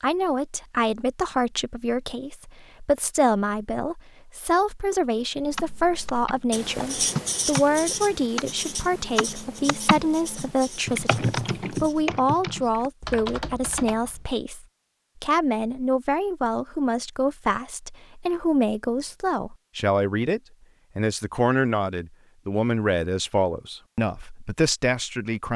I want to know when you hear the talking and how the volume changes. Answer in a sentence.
You can hear the talking from 0.0 to 25.5 s, at a steady volume.